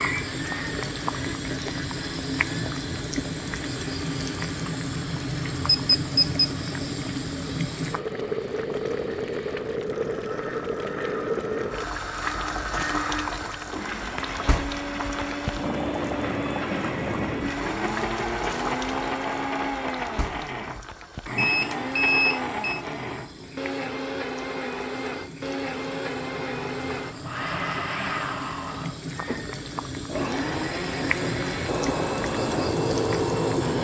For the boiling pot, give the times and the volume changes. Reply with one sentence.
The boiling pot can be heard from 0.0 to 33.7 s, getting quieter then louder.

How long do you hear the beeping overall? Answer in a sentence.
The beeping can be heard for 2 seconds in total.